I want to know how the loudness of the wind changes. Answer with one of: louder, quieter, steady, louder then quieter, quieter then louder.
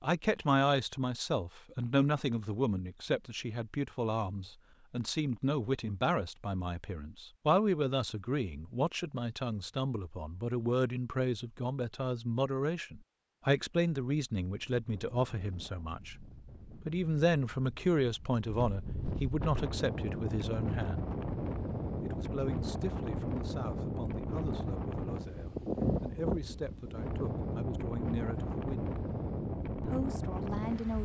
louder.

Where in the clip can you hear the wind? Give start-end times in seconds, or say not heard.
14.4-30.9.